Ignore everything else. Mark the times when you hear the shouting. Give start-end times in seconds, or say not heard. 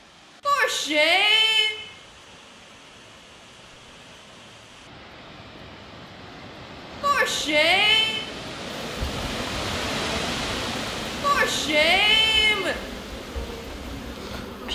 0.5-1.8, 7.0-8.2, 11.2-12.8.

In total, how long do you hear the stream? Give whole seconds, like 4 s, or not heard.
15 s.